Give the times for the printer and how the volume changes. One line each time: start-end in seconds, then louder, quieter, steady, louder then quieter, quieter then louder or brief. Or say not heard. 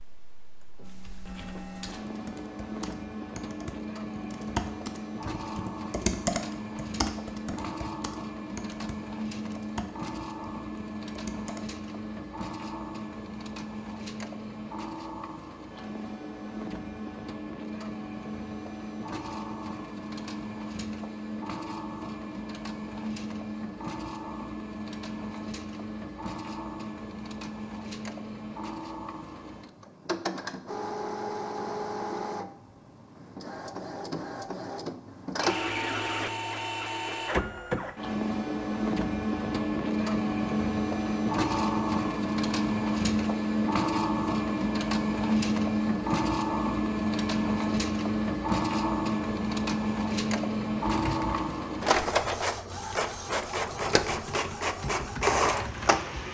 0.0-56.2 louder.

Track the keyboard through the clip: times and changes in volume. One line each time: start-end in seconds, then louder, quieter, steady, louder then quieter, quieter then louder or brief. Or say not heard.
0.8-11.6 louder then quieter
50.9-56.0 quieter then louder.